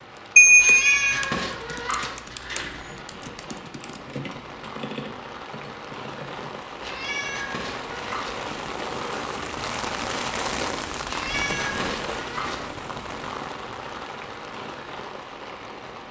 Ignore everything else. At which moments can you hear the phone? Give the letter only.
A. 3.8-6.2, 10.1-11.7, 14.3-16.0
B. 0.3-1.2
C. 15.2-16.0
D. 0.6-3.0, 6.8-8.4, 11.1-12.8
B.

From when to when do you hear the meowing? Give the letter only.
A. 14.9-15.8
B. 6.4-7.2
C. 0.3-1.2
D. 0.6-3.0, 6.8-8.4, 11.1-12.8
D.